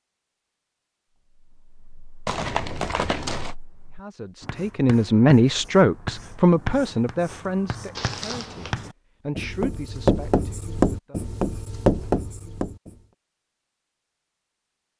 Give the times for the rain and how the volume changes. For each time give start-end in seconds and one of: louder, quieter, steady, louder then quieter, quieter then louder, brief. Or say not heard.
not heard.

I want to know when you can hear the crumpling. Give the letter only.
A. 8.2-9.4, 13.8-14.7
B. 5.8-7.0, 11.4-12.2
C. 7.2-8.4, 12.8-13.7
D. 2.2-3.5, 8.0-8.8
D.